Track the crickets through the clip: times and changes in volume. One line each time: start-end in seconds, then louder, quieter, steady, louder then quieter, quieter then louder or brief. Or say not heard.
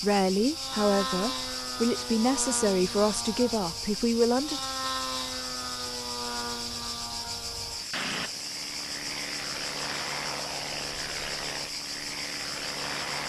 0.0-13.2 steady.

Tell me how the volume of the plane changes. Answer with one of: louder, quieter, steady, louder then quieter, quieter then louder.
steady.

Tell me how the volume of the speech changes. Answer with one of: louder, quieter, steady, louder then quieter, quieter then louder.
steady.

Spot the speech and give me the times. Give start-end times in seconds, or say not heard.
0.0-4.7.